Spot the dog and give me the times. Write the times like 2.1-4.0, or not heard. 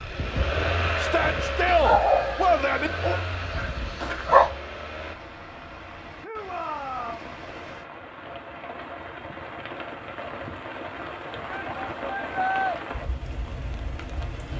1.6-4.5.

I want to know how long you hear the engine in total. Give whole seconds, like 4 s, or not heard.
5 s.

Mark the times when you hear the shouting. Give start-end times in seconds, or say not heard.
0.9-2.9, 6.2-7.3, 11.5-12.8.